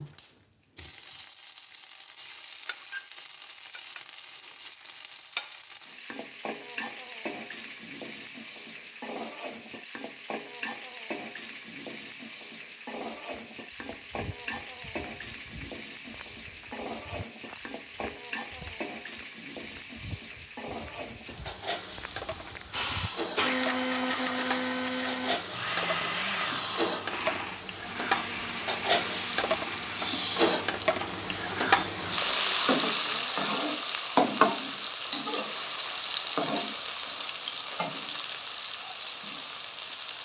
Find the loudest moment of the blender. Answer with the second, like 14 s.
24 s.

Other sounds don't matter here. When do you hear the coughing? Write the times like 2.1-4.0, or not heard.
not heard.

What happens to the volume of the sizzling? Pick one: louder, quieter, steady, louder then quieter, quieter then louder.
louder.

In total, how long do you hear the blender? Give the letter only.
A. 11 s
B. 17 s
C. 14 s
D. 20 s
A.